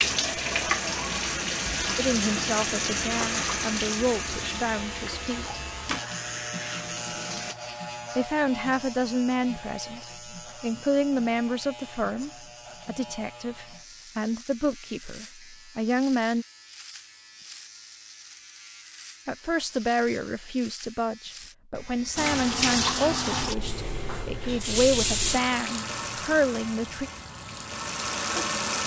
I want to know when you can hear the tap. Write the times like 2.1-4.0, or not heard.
0.0-7.5, 22.1-28.8.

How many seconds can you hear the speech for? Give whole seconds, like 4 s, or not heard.
20 s.